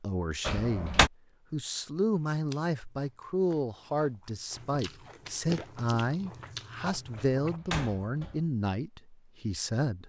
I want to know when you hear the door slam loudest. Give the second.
1 s.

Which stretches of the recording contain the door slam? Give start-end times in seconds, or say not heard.
0.5-1.1, 7.2-8.4.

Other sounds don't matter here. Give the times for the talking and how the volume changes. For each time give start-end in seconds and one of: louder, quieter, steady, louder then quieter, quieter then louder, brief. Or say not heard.
0.0-10.0 steady.